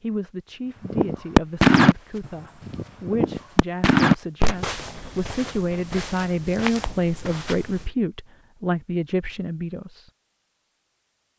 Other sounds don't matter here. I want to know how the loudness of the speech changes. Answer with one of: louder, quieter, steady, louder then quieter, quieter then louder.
louder.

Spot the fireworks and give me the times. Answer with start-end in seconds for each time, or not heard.
0.8-6.0.